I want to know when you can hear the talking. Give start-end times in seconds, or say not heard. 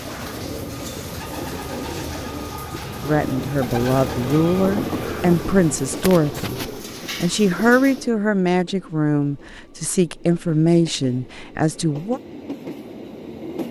3.0-12.2.